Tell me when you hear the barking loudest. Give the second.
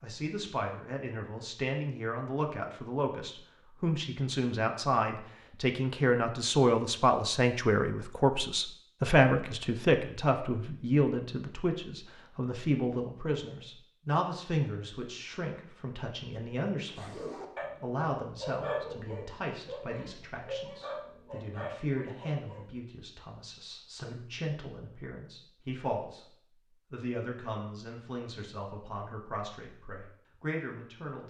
19 s.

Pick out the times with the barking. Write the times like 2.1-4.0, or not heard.
16.9-22.7.